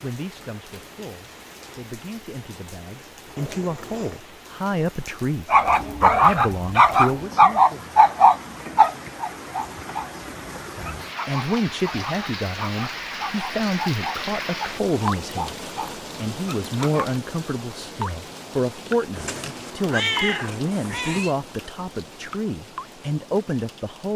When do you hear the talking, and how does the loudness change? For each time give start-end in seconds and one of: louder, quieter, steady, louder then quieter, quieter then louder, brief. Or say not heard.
0.0-7.3 louder
10.7-24.1 steady.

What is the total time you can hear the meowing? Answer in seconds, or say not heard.
3 s.